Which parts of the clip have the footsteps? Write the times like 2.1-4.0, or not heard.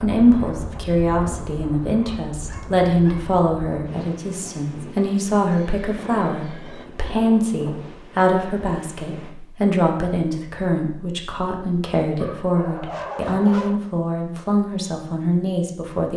not heard.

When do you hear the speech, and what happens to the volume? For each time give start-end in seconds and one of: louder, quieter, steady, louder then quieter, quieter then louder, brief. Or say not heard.
0.0-16.1 steady.